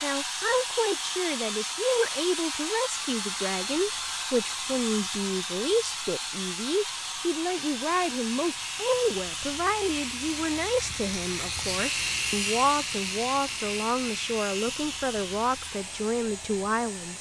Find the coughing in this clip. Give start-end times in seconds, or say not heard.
not heard.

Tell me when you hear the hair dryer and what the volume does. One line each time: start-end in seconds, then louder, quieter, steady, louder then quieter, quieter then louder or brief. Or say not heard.
0.0-17.1 quieter.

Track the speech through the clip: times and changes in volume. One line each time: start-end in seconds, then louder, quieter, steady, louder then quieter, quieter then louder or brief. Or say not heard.
0.0-17.1 steady.